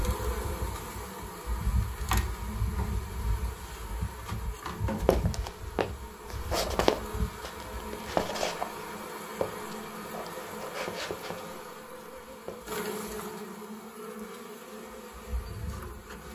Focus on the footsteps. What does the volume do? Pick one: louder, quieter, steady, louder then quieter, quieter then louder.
quieter.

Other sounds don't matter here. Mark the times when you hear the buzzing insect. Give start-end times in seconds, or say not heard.
0.0-16.3.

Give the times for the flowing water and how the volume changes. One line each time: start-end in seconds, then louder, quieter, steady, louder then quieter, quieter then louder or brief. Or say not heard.
not heard.